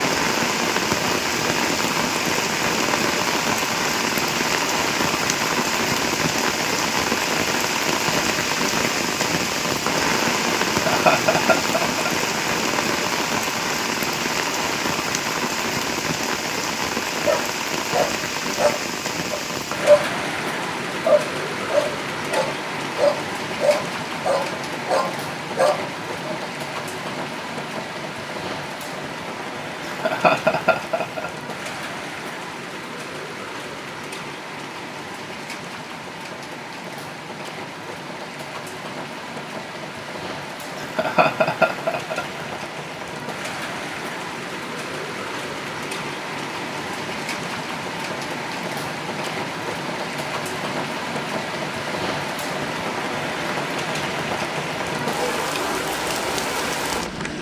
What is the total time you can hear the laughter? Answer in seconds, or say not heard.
5 s.